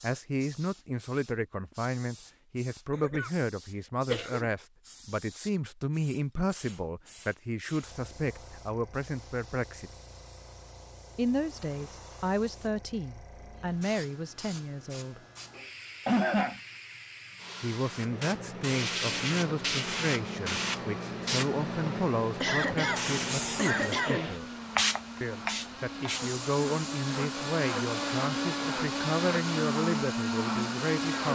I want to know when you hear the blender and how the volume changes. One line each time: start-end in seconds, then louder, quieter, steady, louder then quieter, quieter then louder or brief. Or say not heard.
19.2-31.3 louder.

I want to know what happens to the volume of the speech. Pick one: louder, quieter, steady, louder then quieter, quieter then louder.
steady.